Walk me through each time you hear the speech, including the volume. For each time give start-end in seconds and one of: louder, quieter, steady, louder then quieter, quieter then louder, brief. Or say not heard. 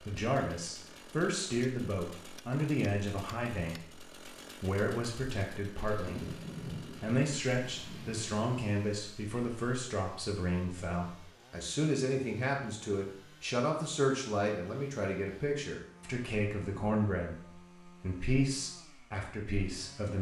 0.0-20.1 steady.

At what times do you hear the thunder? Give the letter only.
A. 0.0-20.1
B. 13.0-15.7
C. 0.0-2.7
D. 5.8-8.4
D.